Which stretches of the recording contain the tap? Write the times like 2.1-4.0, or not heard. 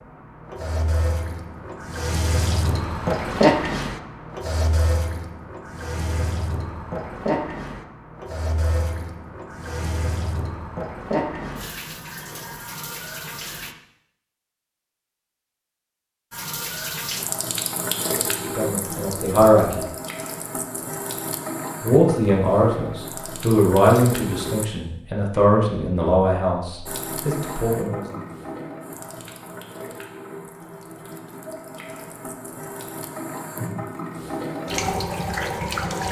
0.0-13.8, 16.3-24.6, 26.9-36.0.